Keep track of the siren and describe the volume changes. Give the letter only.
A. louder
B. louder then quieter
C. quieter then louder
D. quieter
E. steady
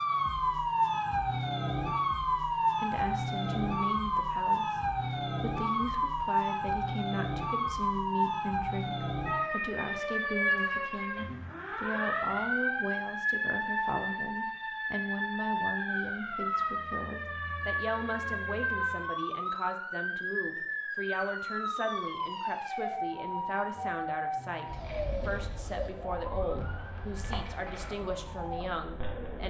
D.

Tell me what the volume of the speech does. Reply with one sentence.
The loudness of the speech stays about the same.